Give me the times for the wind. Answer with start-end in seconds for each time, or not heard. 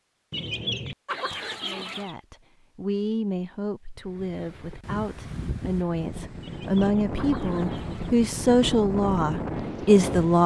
4.0-10.4.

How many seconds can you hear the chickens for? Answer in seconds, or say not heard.
4 s.